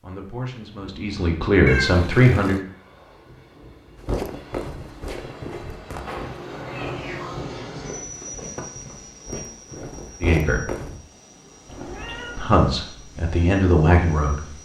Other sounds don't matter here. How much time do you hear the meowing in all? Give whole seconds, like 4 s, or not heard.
3 s.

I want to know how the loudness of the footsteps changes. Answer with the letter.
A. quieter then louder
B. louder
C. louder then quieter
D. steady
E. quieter
A.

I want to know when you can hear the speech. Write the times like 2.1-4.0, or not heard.
0.0-2.5, 10.2-10.7, 12.3-14.4.